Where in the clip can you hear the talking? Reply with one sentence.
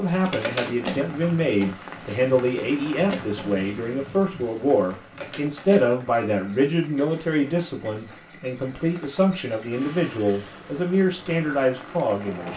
The talking can be heard from 0.0 to 12.5 s.